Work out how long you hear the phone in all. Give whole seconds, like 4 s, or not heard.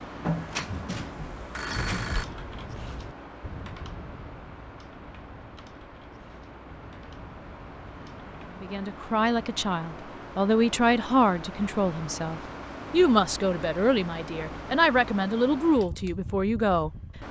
2 s.